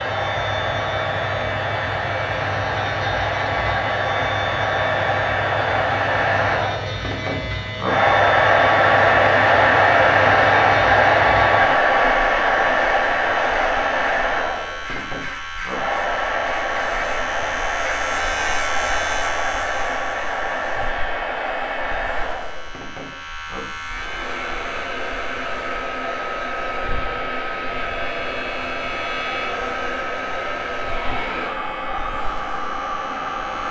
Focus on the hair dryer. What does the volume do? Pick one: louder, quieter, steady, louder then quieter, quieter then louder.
louder then quieter.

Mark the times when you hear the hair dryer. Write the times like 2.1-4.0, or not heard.
0.0-33.6.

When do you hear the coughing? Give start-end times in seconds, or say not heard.
not heard.